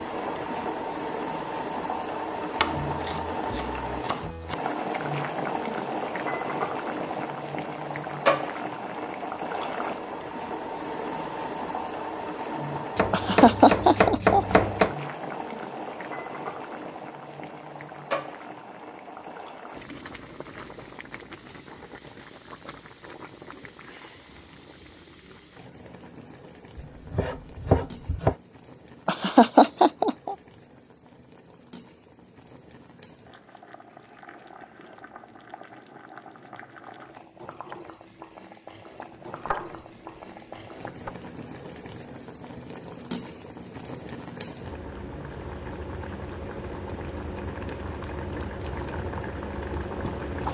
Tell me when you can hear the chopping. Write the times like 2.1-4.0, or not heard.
2.6-4.5, 12.9-14.9, 26.8-28.4, 39.1-41.1.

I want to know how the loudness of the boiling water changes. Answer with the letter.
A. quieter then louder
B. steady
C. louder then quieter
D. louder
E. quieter
A.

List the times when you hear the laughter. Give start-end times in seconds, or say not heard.
13.1-14.7, 29.1-30.4.